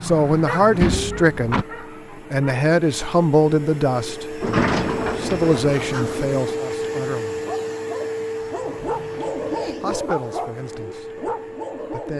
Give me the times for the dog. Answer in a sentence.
The dog can be heard from 0.0 to 2.5 s and from 7.4 to 12.1 s.